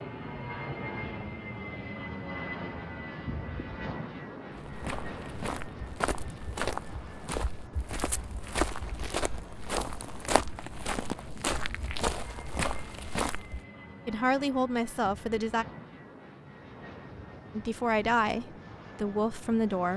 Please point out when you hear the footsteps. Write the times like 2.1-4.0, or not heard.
4.5-13.6.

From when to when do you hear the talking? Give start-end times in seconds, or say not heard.
14.1-15.7, 17.5-19.9.